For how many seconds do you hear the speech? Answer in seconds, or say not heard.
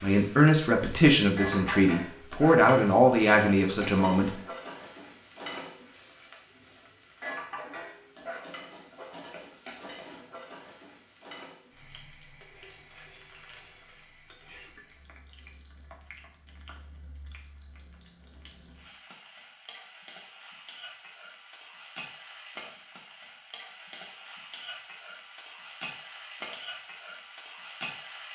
4 s.